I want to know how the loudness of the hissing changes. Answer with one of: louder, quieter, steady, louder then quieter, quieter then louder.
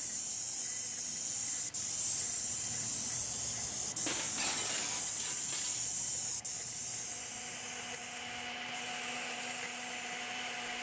quieter.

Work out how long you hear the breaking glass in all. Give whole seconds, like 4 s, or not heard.
2 s.